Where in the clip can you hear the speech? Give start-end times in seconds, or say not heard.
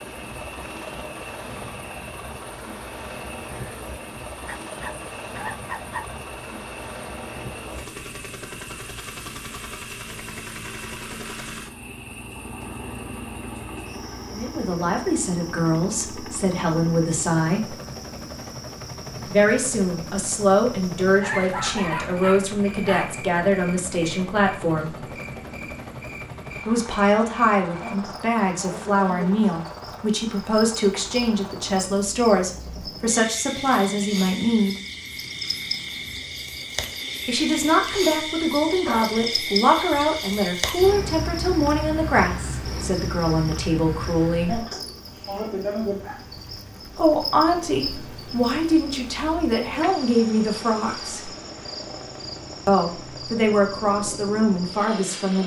14.2-17.8, 19.2-24.9, 26.6-34.8, 37.2-44.6, 47.0-51.3, 52.6-55.4.